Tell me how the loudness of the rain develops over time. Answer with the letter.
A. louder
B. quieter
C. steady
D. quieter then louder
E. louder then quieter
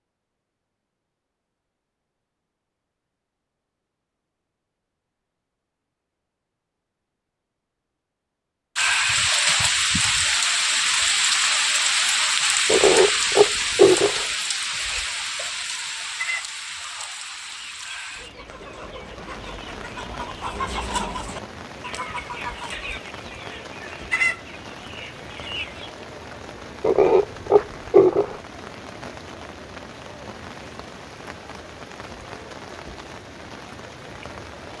B.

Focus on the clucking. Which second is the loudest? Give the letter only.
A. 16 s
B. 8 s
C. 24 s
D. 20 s
C.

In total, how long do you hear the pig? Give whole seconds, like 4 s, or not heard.
3 s.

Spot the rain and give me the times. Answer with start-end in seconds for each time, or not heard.
8.8-34.7.